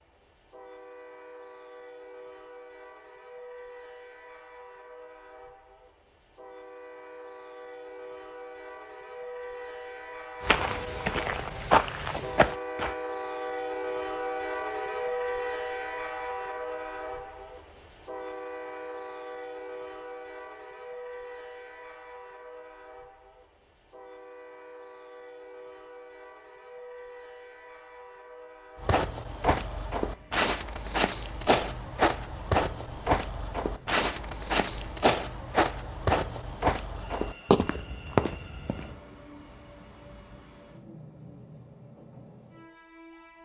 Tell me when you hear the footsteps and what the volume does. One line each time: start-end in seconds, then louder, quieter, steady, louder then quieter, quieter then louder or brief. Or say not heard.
10.4-12.9 brief
28.8-39.0 steady.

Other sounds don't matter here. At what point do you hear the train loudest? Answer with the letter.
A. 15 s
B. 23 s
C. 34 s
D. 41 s
A.